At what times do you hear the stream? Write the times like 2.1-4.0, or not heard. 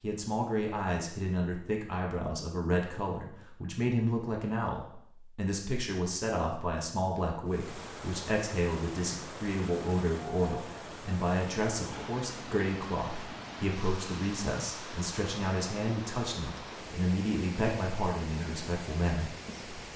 7.5-19.9.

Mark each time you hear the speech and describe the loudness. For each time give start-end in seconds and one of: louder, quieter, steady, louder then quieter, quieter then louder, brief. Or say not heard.
0.0-19.9 steady.